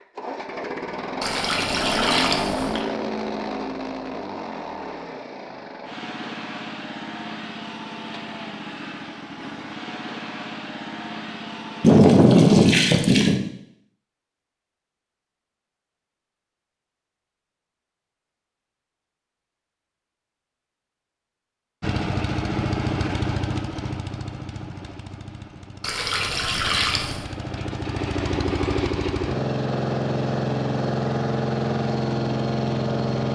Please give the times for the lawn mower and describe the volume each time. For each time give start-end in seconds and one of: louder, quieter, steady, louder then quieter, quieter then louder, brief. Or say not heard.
0.0-12.0 quieter
21.8-33.2 quieter then louder.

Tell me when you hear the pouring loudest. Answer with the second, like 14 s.
12 s.